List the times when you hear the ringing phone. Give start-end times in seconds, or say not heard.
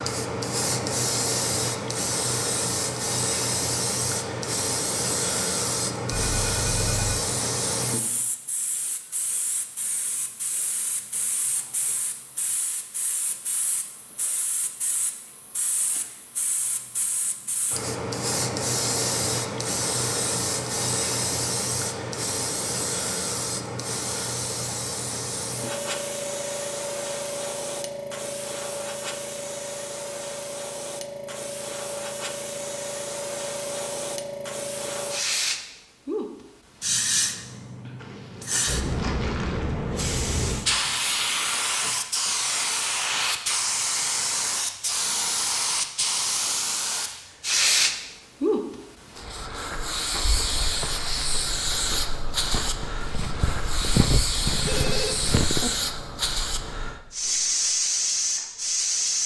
6.1-7.2, 54.6-55.7.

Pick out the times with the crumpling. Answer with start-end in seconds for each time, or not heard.
38.0-39.8.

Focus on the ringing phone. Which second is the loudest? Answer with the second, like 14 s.
55 s.